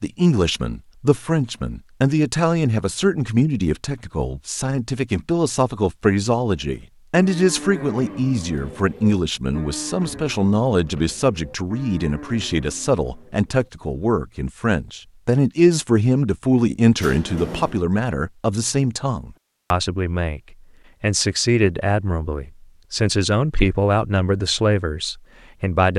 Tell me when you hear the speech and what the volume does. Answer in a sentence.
The speech can be heard from 0.0 to 25.9 s, at a steady volume.